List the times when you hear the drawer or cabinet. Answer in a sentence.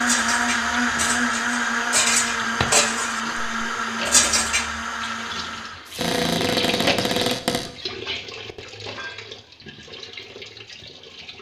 The drawer or cabinet can be heard from 1.9 to 2.9 s and from 6.0 to 7.7 s.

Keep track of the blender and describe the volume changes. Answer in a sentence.
The loudness of the blender goes down.